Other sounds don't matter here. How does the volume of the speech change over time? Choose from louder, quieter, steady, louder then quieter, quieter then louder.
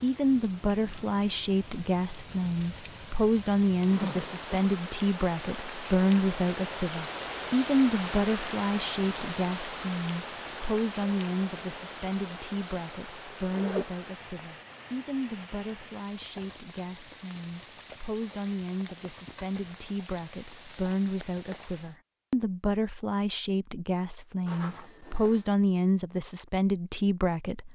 quieter then louder.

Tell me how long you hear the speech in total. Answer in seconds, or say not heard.
28 s.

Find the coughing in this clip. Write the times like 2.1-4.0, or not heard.
not heard.